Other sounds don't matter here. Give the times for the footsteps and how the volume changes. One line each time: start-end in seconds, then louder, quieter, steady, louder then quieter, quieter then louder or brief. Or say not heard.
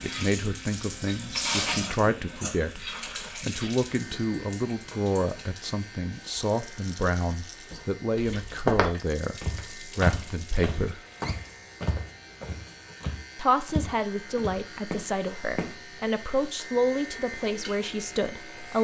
8.2-15.8 quieter.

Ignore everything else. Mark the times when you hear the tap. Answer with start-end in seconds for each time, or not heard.
0.0-11.6.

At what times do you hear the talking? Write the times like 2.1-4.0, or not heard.
0.0-11.0, 13.3-18.7.